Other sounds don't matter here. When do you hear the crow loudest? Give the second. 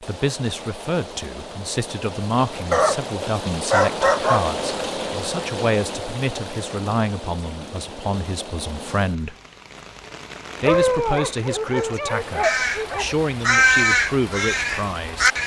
14 s.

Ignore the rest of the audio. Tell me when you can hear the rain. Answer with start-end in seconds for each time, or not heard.
0.0-15.4.